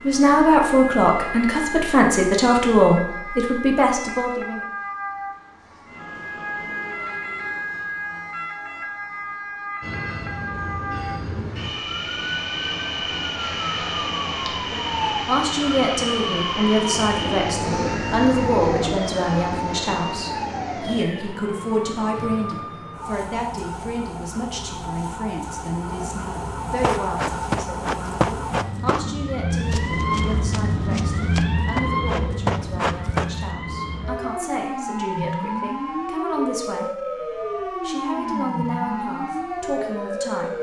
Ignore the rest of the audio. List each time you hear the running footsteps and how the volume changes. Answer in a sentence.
The running footsteps can be heard from 26.8 to 33.4 s, getting quieter then louder.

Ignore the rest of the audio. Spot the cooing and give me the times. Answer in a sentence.
You can hear the cooing from 16.9 to 18.9 s.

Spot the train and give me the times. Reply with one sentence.
You can hear the train from 9.8 to 21.1 s.